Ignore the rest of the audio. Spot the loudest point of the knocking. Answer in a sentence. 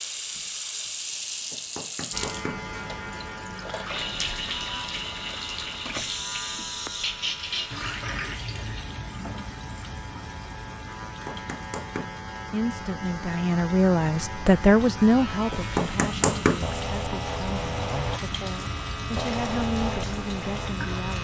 The loudest moment of the knocking is at 16 seconds.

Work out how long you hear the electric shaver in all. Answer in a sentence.
You can hear the electric shaver for 19 seconds altogether.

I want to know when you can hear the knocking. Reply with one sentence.
You can hear the knocking from 1.5 to 2.6 s, from 11.0 to 12.2 s and from 15.5 to 16.6 s.